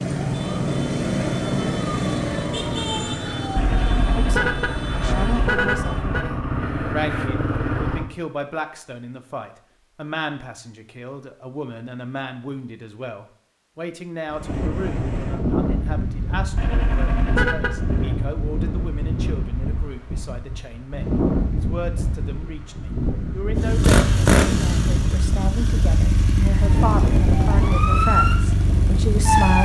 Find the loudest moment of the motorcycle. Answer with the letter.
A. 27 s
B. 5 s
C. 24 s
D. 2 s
C.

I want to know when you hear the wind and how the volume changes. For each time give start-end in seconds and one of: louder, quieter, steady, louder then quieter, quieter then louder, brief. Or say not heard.
14.3-29.4 steady.